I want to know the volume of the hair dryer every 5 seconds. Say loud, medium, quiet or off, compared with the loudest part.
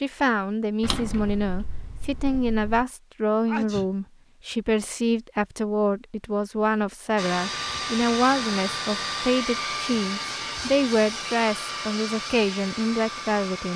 off, loud, loud.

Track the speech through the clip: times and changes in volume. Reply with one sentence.
The speech can be heard from 0.0 to 13.7 s, at a steady volume.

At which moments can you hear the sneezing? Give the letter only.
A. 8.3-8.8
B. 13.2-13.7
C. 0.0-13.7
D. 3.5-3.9
D.